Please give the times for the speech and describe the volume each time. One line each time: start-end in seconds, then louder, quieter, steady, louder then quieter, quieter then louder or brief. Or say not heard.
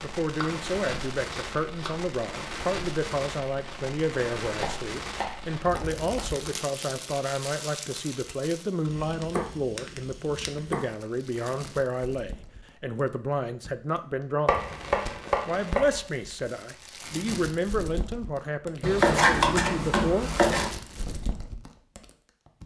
0.0-14.6 steady
15.4-20.3 steady.